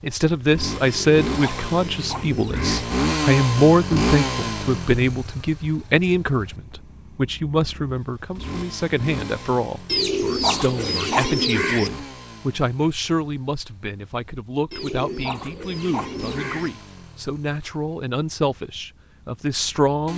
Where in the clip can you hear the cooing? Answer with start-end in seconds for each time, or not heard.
0.8-2.9, 9.8-11.9, 14.7-16.7.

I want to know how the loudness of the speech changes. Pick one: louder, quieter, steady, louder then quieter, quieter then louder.
quieter.